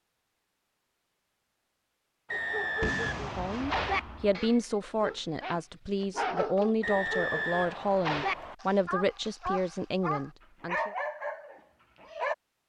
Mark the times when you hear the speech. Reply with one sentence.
You can hear the speech from 3.1 to 10.9 s.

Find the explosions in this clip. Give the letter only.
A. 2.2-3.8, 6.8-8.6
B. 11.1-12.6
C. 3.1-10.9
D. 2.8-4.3
D.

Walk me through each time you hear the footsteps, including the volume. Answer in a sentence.
The footsteps can't be heard in this clip.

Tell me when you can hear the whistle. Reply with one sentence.
The whistle can be heard from 2.2 to 3.8 s and from 6.8 to 8.6 s.